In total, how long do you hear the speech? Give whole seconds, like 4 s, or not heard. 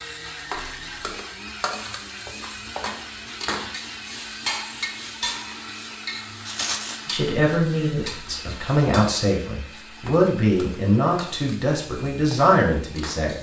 6 s.